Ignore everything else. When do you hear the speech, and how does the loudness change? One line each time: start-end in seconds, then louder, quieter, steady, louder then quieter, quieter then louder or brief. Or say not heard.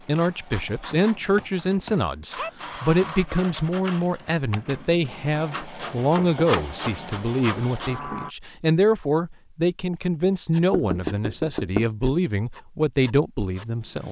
0.1-14.0 steady.